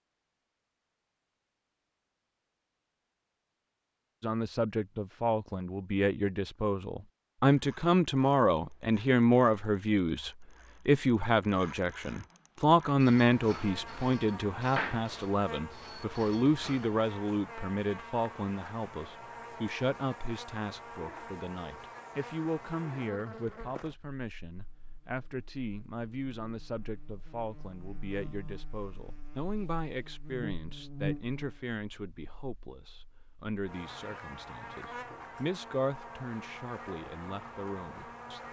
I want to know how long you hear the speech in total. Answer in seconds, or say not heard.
34 s.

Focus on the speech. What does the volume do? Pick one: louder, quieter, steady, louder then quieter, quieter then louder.
quieter.